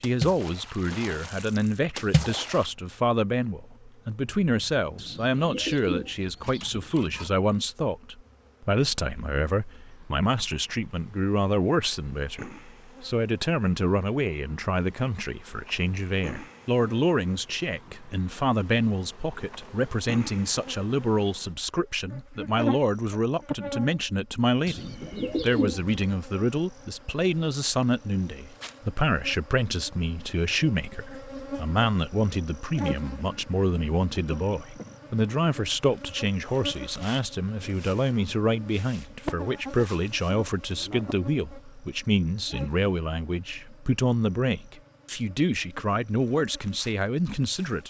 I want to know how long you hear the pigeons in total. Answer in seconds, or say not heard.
4 s.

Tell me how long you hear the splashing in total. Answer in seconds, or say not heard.
3 s.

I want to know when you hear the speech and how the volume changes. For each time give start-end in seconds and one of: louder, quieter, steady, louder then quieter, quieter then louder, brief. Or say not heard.
0.0-47.8 steady.